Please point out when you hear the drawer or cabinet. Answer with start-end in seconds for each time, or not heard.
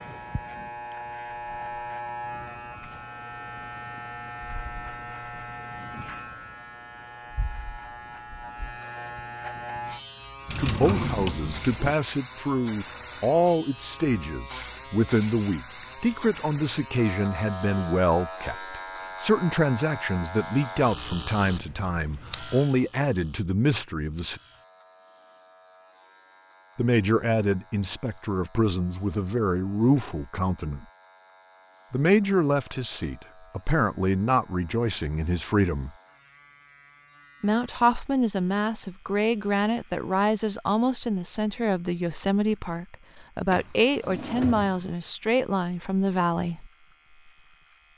10.4-11.9, 43.5-45.0.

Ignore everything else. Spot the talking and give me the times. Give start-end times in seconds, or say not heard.
10.6-24.4, 26.8-30.9, 31.9-35.9, 37.4-46.6.